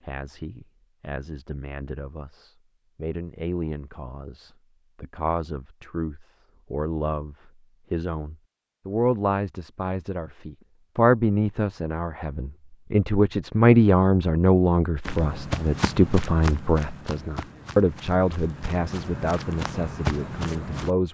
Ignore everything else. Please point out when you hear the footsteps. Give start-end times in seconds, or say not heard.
15.1-20.9.